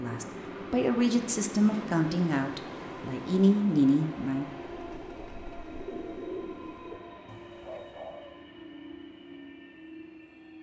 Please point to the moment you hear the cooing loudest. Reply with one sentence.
The volume of the cooing peaks at 6 seconds.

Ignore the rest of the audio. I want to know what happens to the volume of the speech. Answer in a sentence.
The volume of the speech goes down, then up.